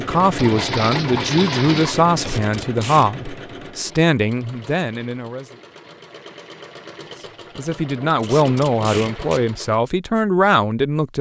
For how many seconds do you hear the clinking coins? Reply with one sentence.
You can hear the clinking coins for 2 seconds altogether.